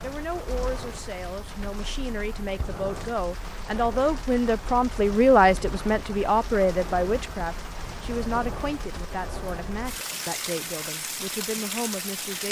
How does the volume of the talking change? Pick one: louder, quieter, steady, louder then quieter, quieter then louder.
louder then quieter.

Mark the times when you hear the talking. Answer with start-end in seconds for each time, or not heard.
0.0-12.4.